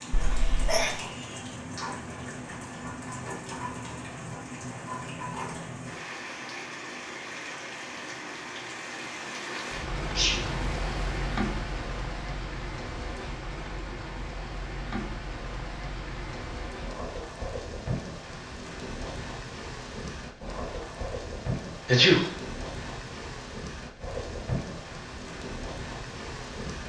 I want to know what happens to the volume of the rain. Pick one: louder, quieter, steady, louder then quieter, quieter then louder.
steady.